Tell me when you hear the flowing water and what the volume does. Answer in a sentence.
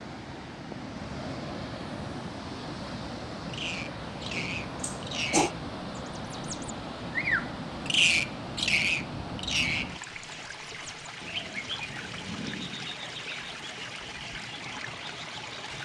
The flowing water can be heard from 0.0 to 15.8 s, at a steady volume.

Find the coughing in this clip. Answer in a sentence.
The coughing can be heard from 4.3 to 5.5 s.